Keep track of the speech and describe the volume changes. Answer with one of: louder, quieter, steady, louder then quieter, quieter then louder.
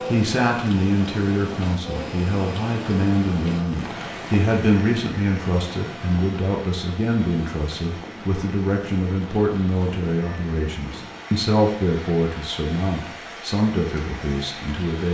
steady.